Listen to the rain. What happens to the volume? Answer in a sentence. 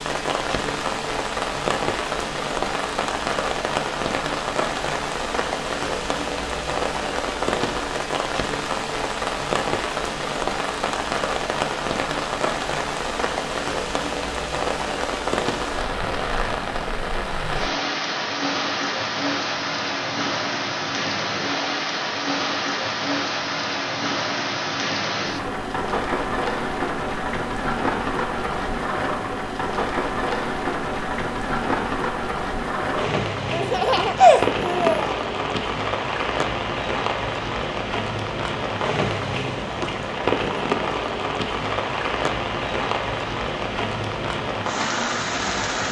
The volume of the rain stays about the same.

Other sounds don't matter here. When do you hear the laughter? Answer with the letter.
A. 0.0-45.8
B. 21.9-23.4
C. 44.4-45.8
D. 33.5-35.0
D.